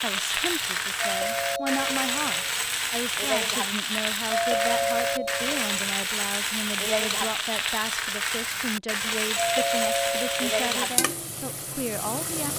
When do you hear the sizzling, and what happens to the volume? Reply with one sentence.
The sizzling can be heard from 0.0 to 12.5 s, at a steady volume.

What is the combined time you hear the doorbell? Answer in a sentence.
You can hear the doorbell for 4 seconds altogether.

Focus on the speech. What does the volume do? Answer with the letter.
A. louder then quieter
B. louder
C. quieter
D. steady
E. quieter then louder
D.